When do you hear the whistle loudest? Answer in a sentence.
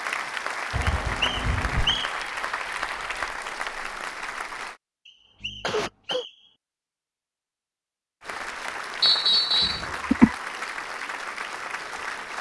The volume of the whistle peaks at 9 seconds.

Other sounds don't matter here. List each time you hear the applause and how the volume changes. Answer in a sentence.
The applause can be heard from 0.0 to 4.8 s, at a steady volume; and from 8.2 to 12.3 s, at a steady volume.